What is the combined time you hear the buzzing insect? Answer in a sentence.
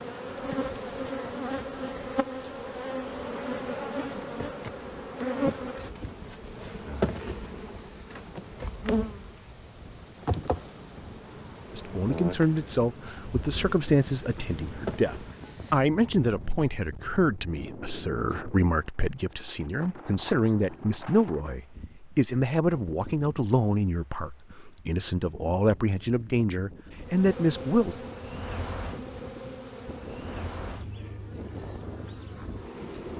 You can hear the buzzing insect for 22 seconds altogether.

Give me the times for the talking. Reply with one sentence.
The talking can be heard from 11.7 to 27.9 s.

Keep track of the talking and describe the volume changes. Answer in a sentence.
The loudness of the talking stays about the same.